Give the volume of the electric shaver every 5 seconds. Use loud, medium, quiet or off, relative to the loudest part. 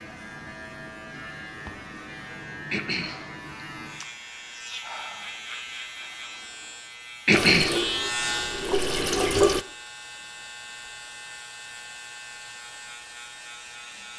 medium, loud, medium.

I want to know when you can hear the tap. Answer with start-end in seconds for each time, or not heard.
7.3-9.7.